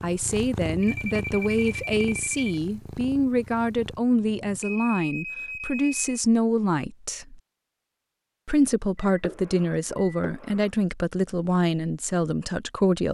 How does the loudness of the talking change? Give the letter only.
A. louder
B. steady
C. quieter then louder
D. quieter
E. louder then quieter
B.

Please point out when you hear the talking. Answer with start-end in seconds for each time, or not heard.
0.0-7.4, 8.4-13.0.